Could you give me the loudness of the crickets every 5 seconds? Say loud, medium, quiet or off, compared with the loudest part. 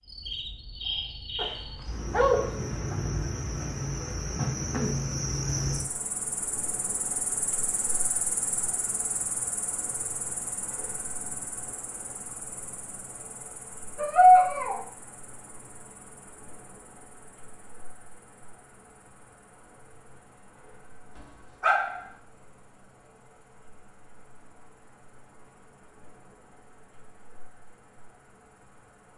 loud, loud, medium, quiet, quiet, quiet.